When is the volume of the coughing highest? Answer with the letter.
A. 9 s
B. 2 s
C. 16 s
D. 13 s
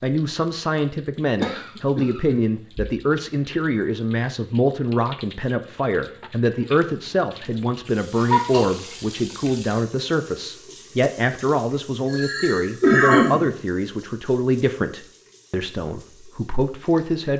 D.